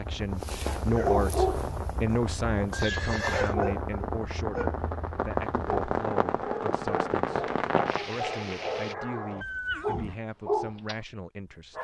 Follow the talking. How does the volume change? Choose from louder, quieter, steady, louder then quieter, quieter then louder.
quieter.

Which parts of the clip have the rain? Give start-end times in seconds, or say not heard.
0.0-8.9.